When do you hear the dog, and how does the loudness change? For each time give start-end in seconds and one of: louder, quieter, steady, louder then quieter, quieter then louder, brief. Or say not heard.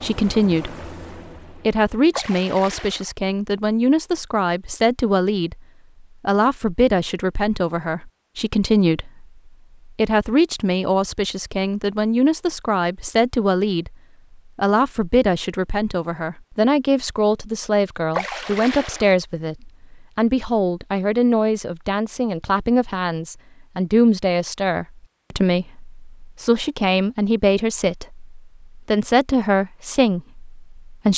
not heard.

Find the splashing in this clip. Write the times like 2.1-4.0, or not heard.
2.1-3.1, 18.1-19.1.